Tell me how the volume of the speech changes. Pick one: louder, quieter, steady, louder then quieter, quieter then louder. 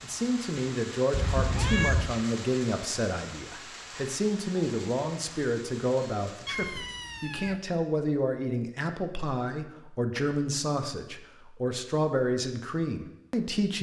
steady.